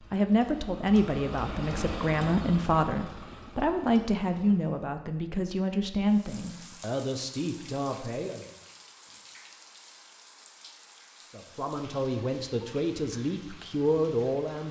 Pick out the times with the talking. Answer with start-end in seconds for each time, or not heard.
0.0-8.5, 11.3-14.6.